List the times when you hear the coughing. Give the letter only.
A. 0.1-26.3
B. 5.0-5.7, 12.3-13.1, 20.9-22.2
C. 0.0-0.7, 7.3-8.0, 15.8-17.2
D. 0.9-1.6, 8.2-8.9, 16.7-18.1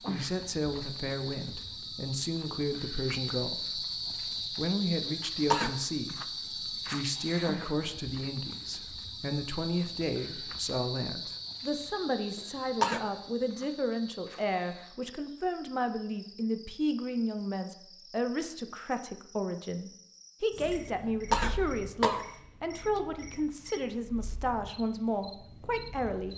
B.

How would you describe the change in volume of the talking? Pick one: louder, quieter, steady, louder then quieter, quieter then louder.
steady.